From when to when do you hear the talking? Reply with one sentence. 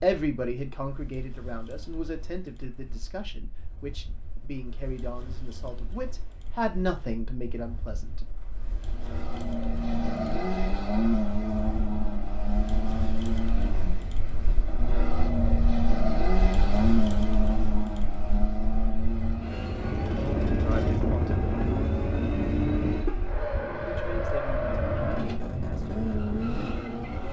You can hear the talking from 0.0 to 8.2 s, from 20.5 to 21.5 s and from 23.9 to 27.0 s.